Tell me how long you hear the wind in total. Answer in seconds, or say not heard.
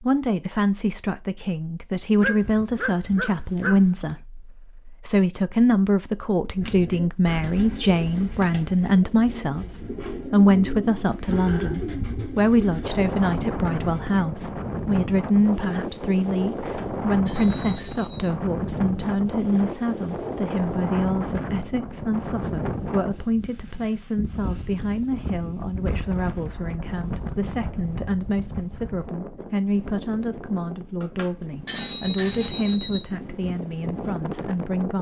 22 s.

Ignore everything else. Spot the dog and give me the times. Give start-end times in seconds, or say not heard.
2.1-4.1.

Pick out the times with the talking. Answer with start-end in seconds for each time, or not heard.
0.0-34.9.